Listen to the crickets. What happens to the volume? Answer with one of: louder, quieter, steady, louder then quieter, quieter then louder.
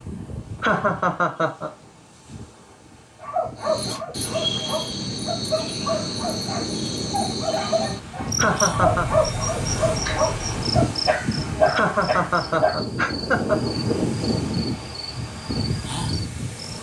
quieter.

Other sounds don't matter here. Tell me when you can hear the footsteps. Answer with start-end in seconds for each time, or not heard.
not heard.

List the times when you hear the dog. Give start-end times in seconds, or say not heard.
3.2-12.8.